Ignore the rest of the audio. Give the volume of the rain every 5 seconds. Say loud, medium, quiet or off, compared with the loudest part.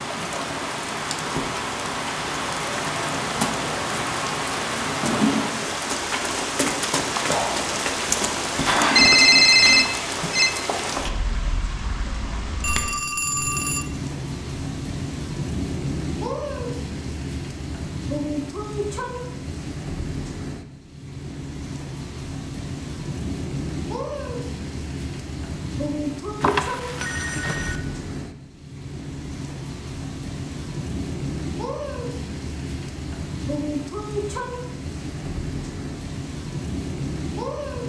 loud, loud, medium, medium, medium, medium, medium, medium.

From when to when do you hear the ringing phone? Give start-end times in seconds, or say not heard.
8.9-10.5, 12.6-13.8, 26.4-27.8.